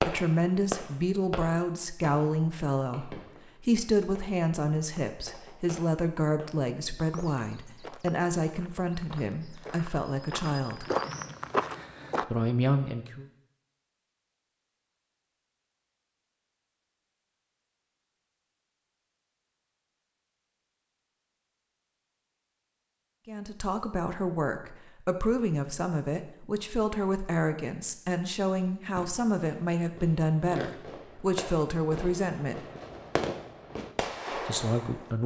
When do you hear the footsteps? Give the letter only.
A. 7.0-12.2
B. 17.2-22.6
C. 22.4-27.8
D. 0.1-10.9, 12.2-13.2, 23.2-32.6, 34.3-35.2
A.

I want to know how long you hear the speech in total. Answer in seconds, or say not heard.
22 s.